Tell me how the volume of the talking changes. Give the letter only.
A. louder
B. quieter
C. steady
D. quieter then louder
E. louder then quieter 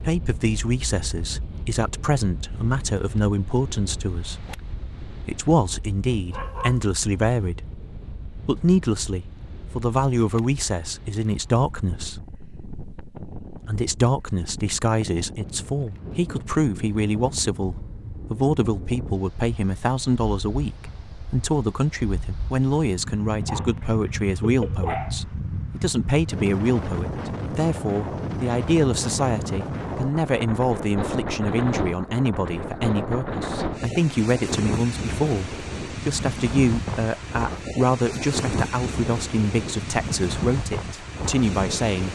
C.